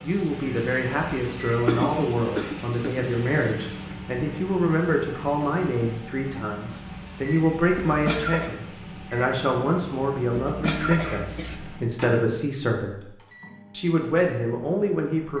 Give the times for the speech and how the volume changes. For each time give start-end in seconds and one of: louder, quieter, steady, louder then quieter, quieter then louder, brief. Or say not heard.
0.0-13.1 steady
13.7-15.3 brief.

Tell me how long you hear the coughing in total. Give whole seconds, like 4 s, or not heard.
3 s.